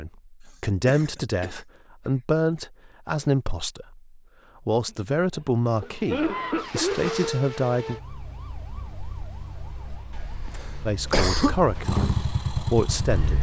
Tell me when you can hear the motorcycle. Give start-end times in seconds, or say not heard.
11.8-13.2.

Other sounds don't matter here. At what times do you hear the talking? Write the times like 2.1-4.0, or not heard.
0.0-8.0, 10.8-13.3.